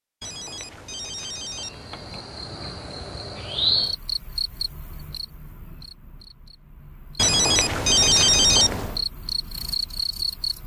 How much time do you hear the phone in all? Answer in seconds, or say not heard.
4 s.